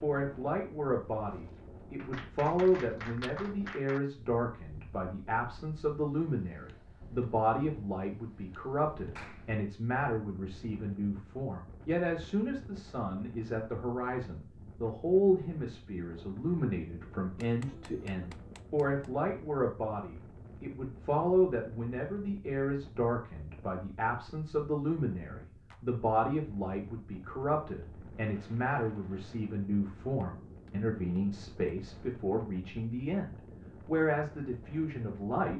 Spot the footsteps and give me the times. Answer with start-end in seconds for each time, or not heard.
not heard.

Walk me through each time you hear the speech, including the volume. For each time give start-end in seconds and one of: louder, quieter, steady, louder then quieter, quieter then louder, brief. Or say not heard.
0.0-35.5 steady.